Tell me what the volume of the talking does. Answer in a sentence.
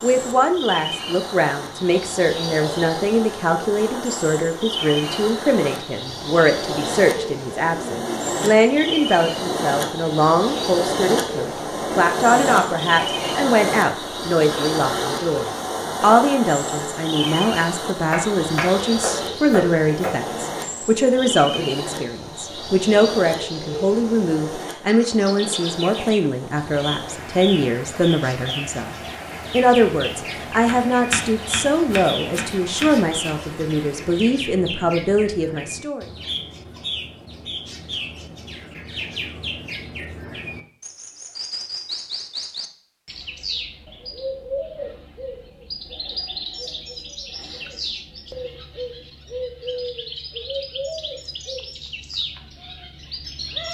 The loudness of the talking stays about the same.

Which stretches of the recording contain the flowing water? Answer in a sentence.
You can hear the flowing water from 0.0 to 34.4 s.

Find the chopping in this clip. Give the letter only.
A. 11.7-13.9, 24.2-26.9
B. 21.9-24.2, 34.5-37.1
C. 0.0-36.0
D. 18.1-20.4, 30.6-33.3
D.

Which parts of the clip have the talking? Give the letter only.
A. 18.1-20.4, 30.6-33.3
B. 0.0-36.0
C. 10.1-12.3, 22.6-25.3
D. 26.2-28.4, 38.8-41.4
B.